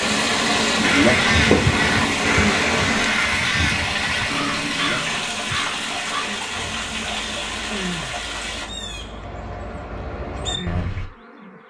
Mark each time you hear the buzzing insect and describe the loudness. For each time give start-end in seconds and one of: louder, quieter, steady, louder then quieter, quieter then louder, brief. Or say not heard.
0.0-11.6 quieter.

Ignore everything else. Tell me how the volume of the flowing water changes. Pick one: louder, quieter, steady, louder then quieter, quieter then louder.
quieter.